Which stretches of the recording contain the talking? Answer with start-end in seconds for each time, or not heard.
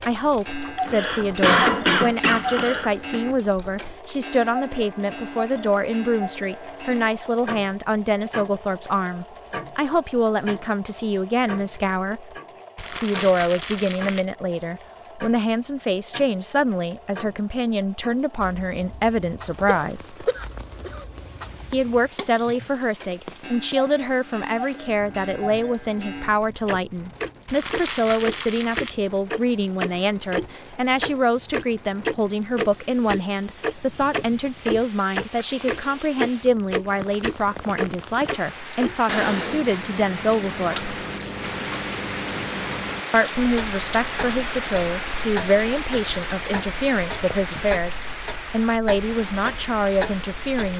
0.0-12.2, 13.0-20.3, 21.7-41.0, 43.1-50.7.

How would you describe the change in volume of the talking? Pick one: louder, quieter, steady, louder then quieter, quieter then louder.
steady.